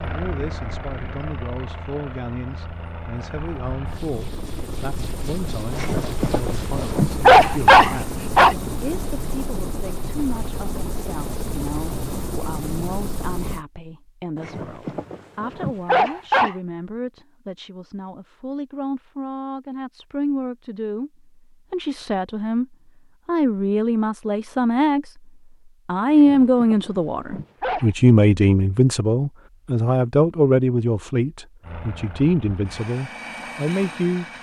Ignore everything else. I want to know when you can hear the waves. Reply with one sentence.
The waves can't be heard in this clip.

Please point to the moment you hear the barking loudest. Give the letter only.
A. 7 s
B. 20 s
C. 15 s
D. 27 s
A.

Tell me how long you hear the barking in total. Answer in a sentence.
The barking can be heard for 7 seconds in total.